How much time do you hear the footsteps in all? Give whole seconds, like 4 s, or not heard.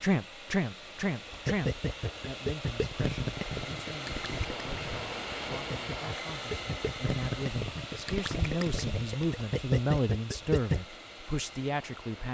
not heard.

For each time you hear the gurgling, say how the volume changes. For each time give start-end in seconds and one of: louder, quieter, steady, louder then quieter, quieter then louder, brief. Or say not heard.
1.3-10.8 quieter then louder.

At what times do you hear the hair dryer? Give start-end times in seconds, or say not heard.
0.0-12.2.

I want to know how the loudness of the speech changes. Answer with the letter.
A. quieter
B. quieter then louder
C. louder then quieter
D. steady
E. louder
B.